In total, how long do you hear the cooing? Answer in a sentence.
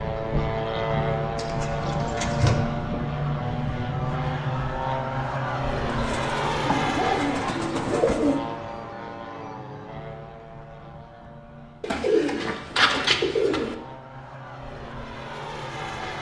The cooing can be heard for 6 seconds in total.